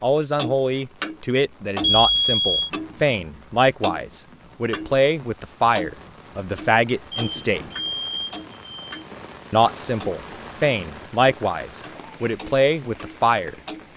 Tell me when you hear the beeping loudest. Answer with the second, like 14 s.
2 s.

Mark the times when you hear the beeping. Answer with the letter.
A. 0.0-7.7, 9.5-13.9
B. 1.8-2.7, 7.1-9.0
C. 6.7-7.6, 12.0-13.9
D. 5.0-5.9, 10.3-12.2
B.